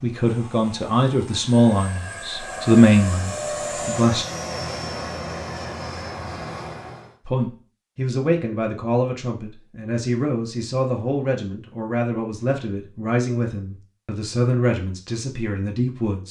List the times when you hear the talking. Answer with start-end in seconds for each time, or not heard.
0.0-4.2, 7.2-16.2.